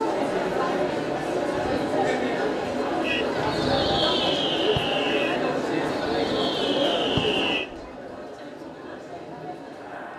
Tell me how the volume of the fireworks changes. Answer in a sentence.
The loudness of the fireworks goes down, then up.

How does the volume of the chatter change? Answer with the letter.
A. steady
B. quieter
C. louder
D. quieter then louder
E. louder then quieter
B.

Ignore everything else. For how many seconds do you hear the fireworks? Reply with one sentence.
The fireworks can be heard for 5 seconds in total.